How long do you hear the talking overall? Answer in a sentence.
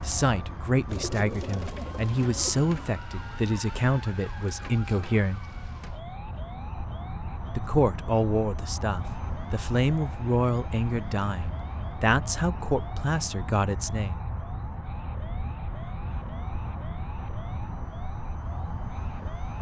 You can hear the talking for 12 seconds altogether.